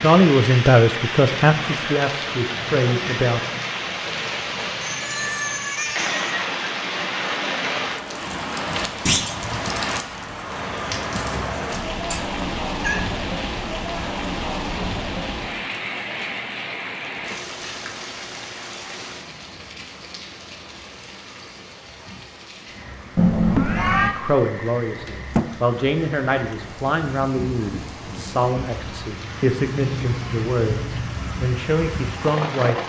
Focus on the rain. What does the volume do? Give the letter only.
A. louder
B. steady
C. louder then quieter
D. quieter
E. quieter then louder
E.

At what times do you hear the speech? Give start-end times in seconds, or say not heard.
0.0-3.5, 24.1-32.8.